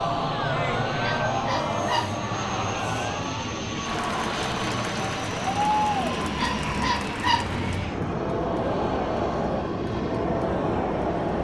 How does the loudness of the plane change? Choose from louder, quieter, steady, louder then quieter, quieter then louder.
steady.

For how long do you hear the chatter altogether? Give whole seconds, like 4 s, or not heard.
11 s.